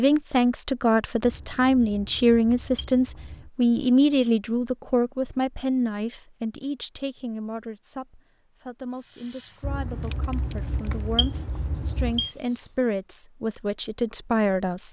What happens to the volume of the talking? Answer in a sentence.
The loudness of the talking goes down, then up.